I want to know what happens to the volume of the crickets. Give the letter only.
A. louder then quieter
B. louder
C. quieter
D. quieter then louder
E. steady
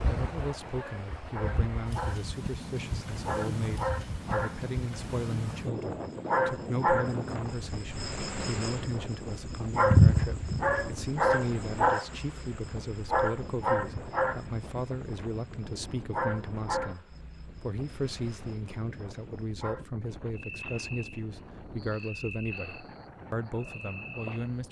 A.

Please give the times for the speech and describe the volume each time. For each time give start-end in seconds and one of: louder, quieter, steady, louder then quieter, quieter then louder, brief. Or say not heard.
0.1-24.6 steady.